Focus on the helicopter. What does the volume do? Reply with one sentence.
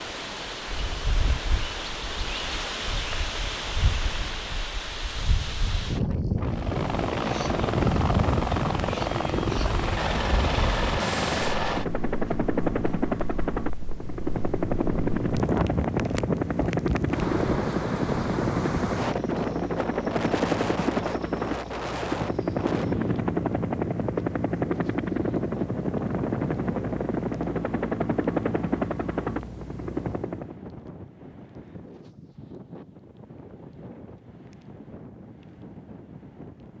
The loudness of the helicopter stays about the same.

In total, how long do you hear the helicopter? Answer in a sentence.
The helicopter can be heard for 24 seconds in total.